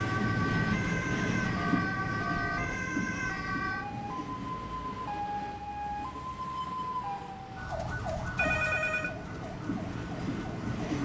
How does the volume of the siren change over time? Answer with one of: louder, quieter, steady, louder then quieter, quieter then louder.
quieter.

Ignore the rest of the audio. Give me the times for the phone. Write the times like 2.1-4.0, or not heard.
1.6-2.6, 8.3-9.1.